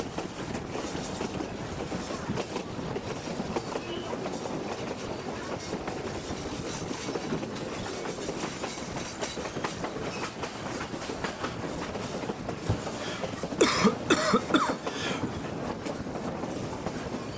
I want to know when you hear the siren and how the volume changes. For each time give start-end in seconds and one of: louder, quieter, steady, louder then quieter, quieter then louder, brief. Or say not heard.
not heard.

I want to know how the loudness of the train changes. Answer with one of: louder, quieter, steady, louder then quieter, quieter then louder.
steady.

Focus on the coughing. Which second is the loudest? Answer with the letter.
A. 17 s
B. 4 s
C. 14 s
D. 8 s
C.